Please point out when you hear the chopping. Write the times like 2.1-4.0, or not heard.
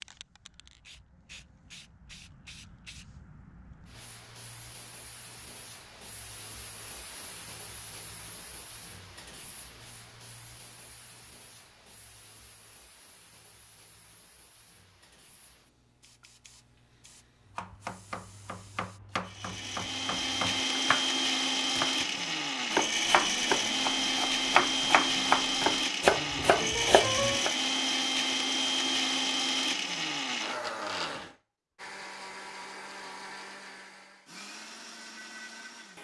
17.5-21.1, 21.8-27.5.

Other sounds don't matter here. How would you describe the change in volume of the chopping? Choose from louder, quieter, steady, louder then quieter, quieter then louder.
louder.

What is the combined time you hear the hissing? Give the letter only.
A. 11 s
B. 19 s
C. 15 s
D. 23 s
B.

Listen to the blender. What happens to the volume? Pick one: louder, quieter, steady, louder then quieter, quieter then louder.
quieter.